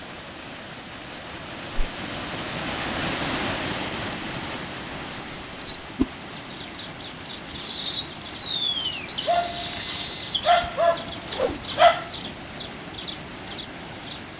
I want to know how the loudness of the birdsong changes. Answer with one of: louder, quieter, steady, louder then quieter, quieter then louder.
louder then quieter.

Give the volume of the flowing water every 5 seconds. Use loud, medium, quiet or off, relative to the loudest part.
loud, medium, medium.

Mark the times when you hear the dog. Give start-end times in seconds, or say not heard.
9.2-12.1.